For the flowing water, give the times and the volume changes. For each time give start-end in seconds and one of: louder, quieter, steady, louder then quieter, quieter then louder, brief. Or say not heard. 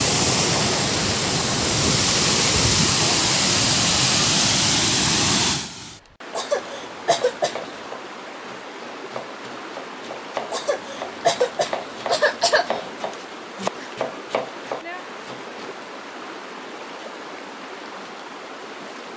0.0-19.1 quieter.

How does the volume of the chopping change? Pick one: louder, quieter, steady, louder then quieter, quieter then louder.
louder.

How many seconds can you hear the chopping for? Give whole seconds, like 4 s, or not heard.
9 s.